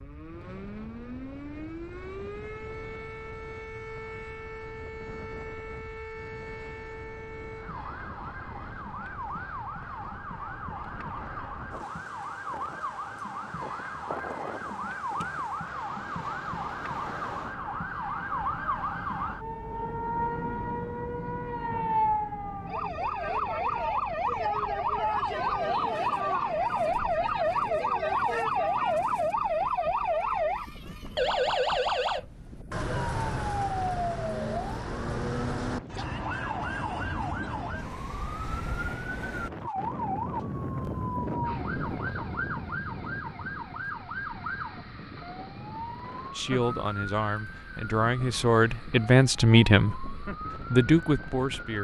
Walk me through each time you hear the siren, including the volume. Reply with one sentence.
The siren can be heard from 0.0 to 51.7 s, getting louder then quieter.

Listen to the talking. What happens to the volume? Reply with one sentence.
The volume of the talking goes up.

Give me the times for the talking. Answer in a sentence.
The talking can be heard from 46.4 to 51.7 s.